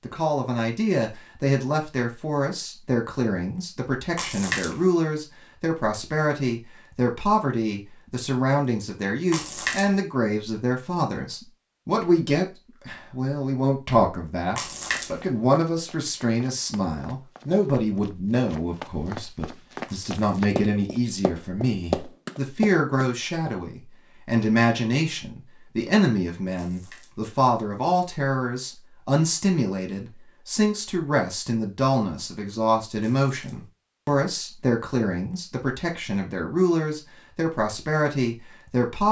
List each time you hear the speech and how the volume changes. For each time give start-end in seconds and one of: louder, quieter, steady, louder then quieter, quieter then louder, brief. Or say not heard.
0.0-39.0 steady.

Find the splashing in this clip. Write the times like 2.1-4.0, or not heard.
4.2-4.8, 9.3-10.0, 14.6-15.2, 19.9-20.4, 26.6-27.2, 33.0-33.7.